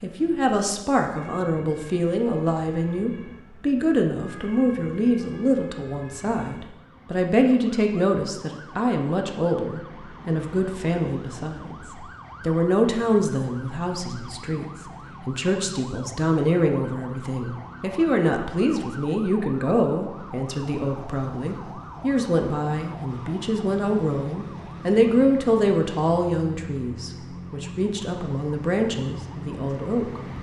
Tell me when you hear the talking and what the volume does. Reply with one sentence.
The talking can be heard from 0.0 to 30.2 s, at a steady volume.